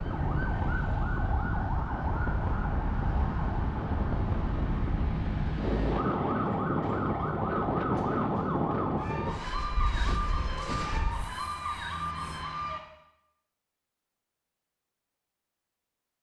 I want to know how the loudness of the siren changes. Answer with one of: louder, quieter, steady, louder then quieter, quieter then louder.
steady.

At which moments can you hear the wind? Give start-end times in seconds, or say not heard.
0.0-12.4.